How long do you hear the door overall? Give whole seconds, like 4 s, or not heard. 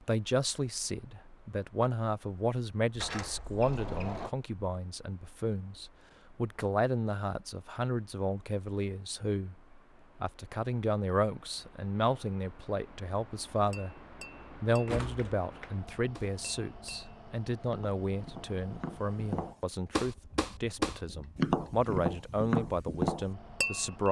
2 s.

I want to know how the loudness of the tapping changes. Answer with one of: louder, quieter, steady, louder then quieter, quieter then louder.
louder.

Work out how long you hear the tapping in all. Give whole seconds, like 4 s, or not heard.
10 s.